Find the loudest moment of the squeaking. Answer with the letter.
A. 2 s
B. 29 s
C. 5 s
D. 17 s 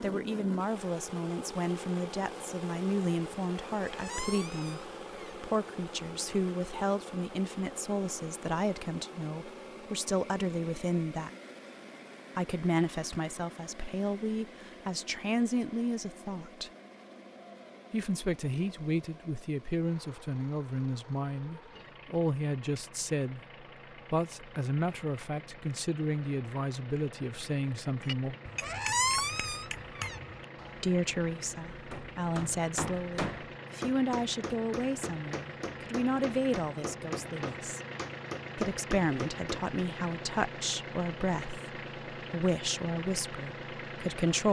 B.